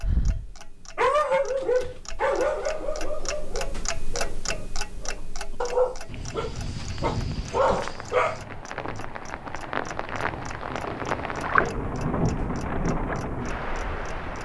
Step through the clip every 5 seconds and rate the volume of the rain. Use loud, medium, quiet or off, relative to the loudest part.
off, medium, loud.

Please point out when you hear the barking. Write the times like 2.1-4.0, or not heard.
0.0-8.4.